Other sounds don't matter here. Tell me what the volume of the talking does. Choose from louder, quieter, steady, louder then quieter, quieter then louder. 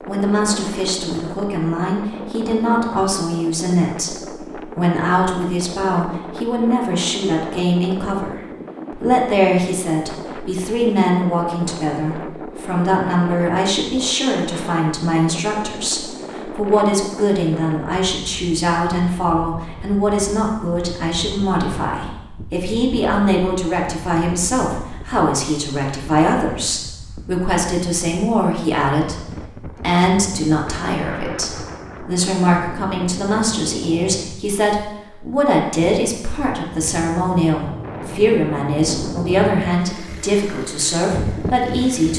steady.